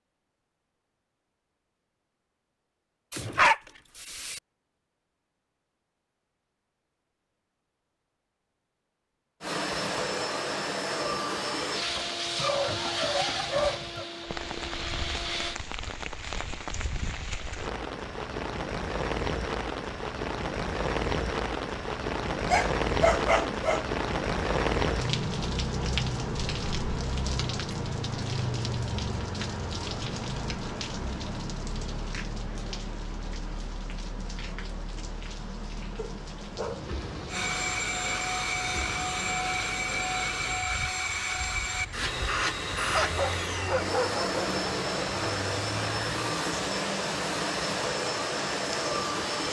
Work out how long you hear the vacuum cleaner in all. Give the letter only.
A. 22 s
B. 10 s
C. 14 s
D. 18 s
D.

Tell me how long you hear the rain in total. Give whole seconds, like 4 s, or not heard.
35 s.